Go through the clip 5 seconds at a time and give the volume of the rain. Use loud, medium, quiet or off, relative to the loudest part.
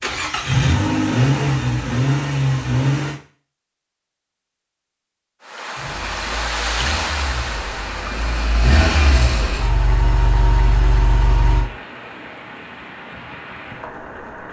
off, loud, medium.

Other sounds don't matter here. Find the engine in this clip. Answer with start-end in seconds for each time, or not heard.
0.0-3.2, 5.8-11.7.